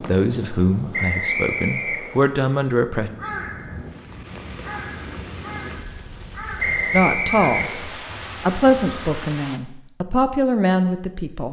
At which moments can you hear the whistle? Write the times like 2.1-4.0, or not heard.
0.9-2.2, 6.5-7.8.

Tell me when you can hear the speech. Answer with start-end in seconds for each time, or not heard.
0.0-3.1, 6.9-11.4.